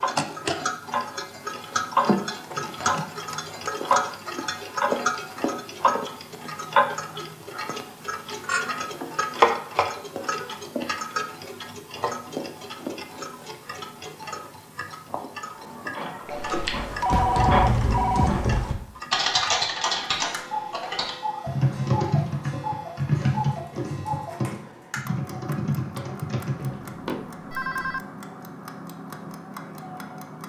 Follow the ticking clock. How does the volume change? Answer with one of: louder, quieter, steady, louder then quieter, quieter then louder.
quieter.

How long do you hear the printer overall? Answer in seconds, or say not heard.
3 s.